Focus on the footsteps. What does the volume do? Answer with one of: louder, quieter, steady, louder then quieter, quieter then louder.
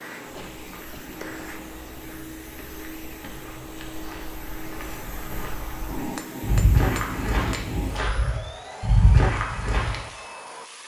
louder.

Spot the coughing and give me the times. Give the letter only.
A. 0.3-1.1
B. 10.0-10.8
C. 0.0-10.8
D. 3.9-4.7
A.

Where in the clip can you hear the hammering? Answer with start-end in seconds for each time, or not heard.
0.1-1.8, 5.8-8.0.